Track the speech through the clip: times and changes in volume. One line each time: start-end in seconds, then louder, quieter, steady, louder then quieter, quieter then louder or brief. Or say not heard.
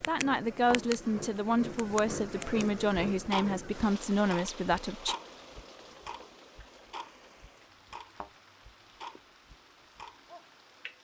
0.1-5.2 steady.